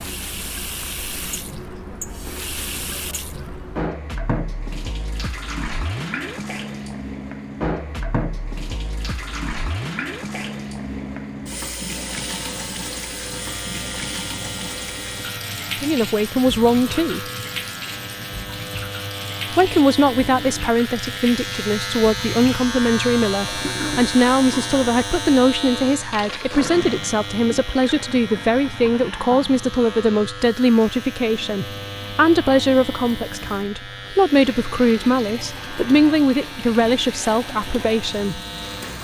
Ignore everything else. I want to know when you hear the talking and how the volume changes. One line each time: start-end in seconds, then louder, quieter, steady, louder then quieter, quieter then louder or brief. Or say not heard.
15.8-17.2 brief
19.5-38.4 steady.